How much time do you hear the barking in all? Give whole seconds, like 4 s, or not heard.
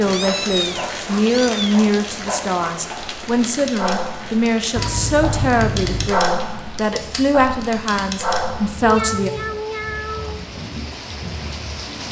9 s.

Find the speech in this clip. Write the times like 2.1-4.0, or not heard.
0.0-9.3.